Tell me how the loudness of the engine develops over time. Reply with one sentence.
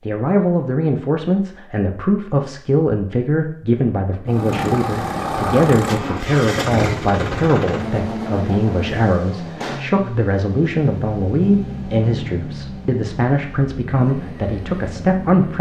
The volume of the engine goes down.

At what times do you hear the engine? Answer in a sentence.
You can hear the engine from 4.2 to 15.5 s.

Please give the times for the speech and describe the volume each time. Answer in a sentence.
The speech can be heard from 0.1 to 15.5 s, at a steady volume.